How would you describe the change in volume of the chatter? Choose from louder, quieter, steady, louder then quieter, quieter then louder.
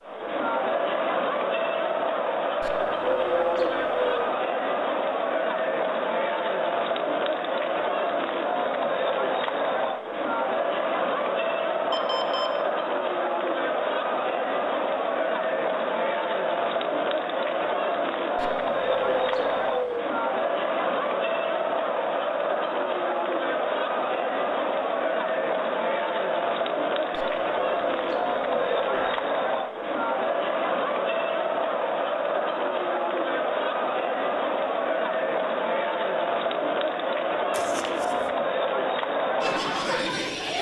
steady.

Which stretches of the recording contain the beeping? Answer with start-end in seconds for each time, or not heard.
11.9-12.5, 37.5-38.1.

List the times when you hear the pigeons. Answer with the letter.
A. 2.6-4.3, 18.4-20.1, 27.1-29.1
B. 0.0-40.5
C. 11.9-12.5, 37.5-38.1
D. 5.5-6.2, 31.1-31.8
A.